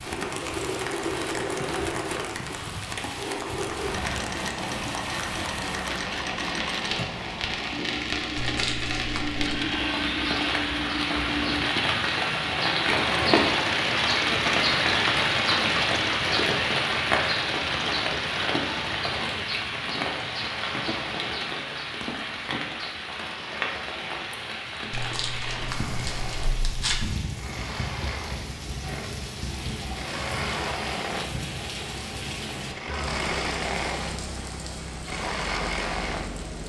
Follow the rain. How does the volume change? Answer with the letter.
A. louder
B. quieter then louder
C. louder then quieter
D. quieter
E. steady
C.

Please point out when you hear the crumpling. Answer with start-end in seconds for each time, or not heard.
8.3-9.6, 24.9-27.1.